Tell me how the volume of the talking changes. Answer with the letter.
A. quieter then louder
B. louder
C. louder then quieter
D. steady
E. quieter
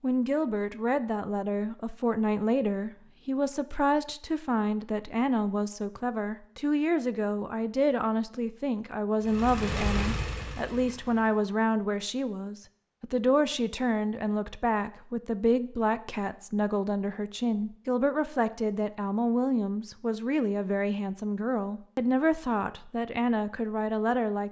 D.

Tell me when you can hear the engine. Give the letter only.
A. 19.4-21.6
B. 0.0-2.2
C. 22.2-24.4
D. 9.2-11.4
D.